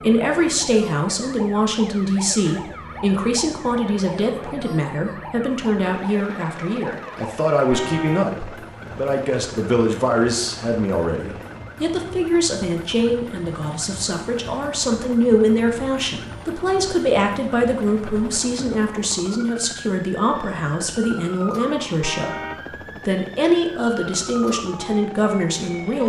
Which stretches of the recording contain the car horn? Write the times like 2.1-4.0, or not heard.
7.7-8.3, 22.0-22.6.